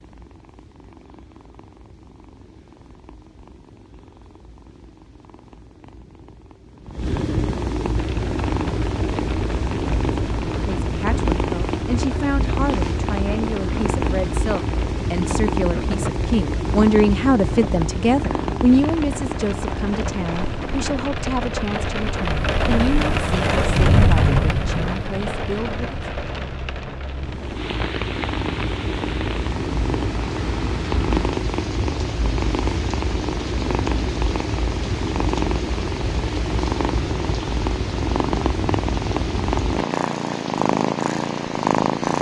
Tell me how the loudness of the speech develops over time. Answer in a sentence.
The loudness of the speech goes up, then down.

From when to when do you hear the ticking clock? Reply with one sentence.
You can't hear the ticking clock here.